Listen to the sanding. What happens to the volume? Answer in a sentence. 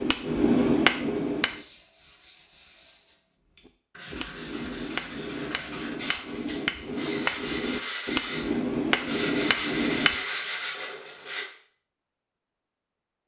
The loudness of the sanding goes up.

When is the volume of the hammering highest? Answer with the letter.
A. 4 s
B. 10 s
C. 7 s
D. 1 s
D.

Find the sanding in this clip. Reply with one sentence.
You can hear the sanding from 1.5 to 11.4 s.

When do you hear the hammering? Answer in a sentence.
You can hear the hammering from 0.0 to 1.6 s and from 3.6 to 10.2 s.